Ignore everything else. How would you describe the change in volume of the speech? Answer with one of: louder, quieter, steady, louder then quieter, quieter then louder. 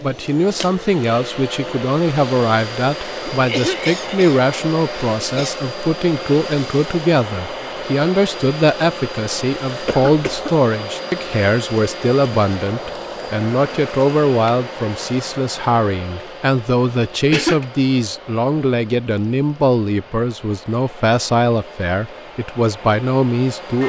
steady.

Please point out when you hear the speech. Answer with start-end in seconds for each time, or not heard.
0.0-23.8.